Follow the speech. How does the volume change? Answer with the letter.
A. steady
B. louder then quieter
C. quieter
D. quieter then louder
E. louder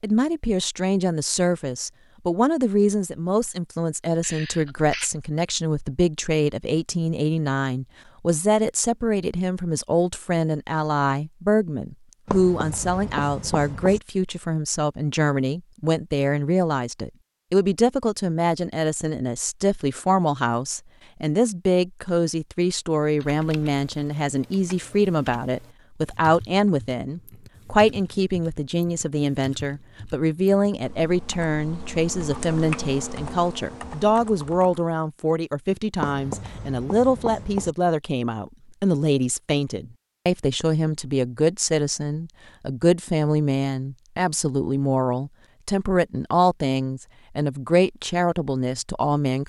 A.